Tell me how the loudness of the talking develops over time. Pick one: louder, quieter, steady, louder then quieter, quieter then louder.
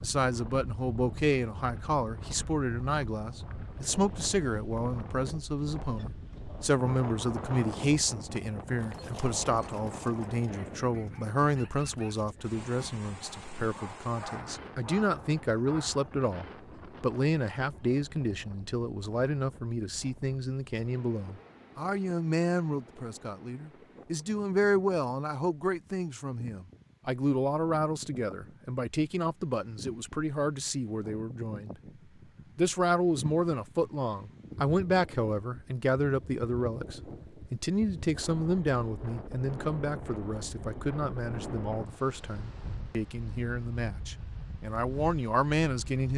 steady.